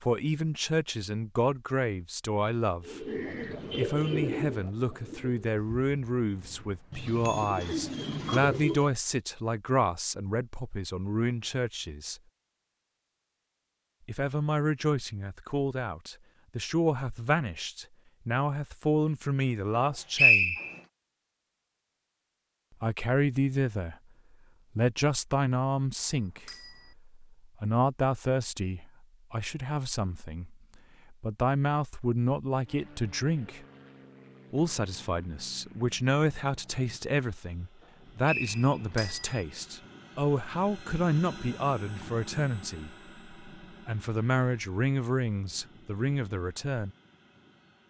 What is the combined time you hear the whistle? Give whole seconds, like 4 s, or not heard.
2 s.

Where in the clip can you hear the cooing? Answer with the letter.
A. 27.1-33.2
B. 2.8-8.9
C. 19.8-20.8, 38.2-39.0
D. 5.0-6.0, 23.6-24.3
B.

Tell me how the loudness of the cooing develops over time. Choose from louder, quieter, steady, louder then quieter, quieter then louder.
quieter then louder.